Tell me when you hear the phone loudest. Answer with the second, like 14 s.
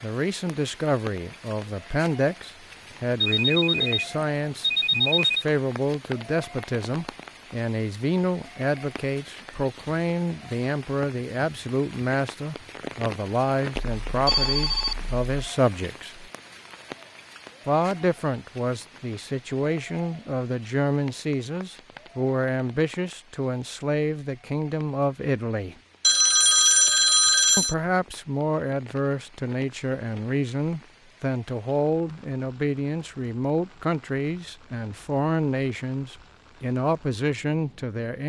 27 s.